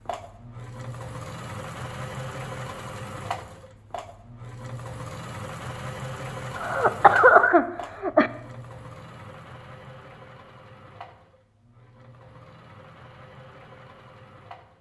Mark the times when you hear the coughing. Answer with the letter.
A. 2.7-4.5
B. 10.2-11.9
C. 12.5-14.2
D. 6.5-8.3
D.